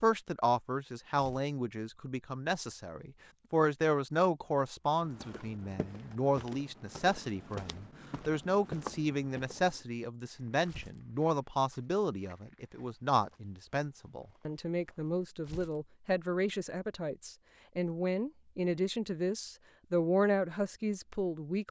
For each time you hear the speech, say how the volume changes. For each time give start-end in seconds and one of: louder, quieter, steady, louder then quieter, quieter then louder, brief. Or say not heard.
0.0-21.6 steady.